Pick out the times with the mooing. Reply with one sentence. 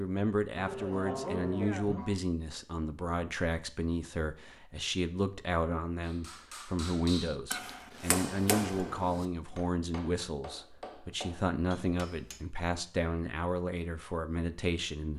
The mooing can be heard from 0.6 to 2.2 s.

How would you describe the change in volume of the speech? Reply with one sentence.
The loudness of the speech stays about the same.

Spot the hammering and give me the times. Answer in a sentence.
The hammering can be heard from 6.0 to 12.4 s.